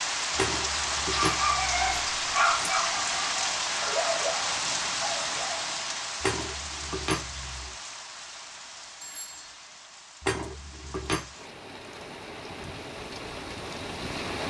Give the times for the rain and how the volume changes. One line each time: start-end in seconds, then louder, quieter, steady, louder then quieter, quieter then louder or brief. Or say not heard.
0.0-14.4 quieter then louder.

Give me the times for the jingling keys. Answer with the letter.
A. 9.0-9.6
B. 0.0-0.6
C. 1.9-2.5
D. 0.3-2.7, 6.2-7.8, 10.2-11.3
D.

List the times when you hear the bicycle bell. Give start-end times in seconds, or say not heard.
9.0-9.6.